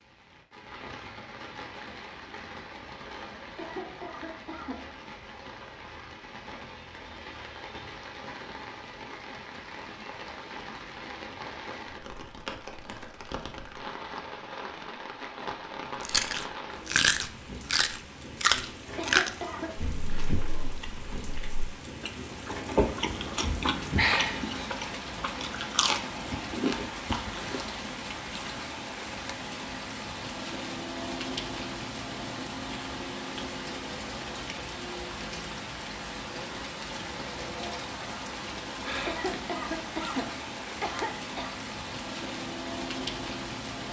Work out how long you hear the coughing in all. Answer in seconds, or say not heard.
5 s.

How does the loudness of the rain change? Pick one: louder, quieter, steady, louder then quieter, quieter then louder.
louder.